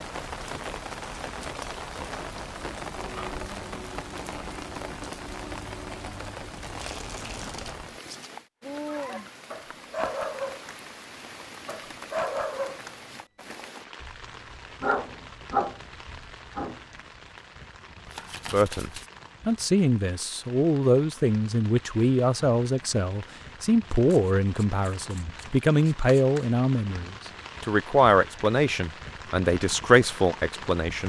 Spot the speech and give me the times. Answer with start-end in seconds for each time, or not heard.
18.5-31.0.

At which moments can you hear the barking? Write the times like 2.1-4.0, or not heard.
8.8-10.8, 11.7-12.9, 14.0-16.8.